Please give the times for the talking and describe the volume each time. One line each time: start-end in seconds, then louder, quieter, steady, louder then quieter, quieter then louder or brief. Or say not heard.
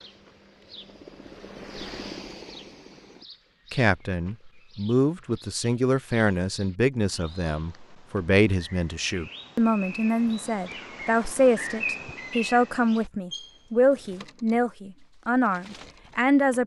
3.7-16.6 steady.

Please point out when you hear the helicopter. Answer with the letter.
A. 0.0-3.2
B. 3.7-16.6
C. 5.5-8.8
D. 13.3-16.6
A.